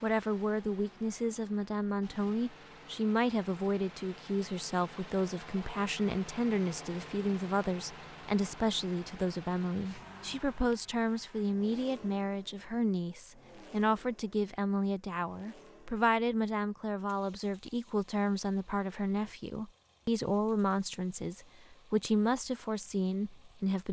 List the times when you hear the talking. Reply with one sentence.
You can hear the talking from 0.0 to 23.8 s.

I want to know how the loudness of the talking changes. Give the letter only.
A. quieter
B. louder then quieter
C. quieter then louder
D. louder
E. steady
E.